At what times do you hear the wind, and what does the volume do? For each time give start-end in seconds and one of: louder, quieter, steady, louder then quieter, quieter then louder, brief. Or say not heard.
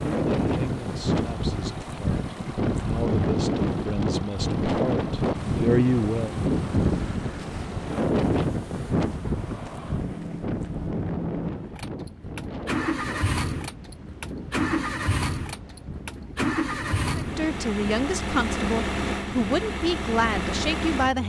0.0-21.0 quieter.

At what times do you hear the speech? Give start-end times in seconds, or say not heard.
0.0-6.3, 17.1-21.2.